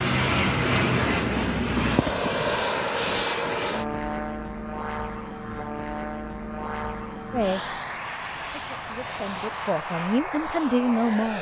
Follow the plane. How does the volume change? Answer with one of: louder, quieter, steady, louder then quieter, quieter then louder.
quieter.